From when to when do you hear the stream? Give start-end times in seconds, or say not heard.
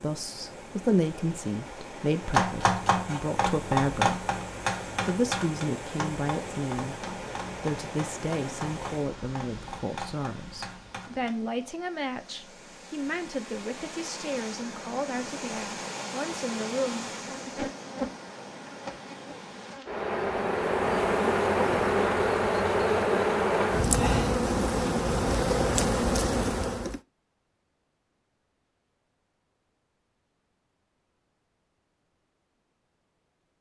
0.0-19.8.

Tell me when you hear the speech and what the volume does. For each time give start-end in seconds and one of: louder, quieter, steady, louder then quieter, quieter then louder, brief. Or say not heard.
0.0-4.2 quieter then louder
5.0-17.7 steady.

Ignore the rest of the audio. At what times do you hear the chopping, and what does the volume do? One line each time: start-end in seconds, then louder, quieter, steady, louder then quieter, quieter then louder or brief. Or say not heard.
2.2-11.3 quieter.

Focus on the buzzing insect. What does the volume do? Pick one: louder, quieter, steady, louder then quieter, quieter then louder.
louder.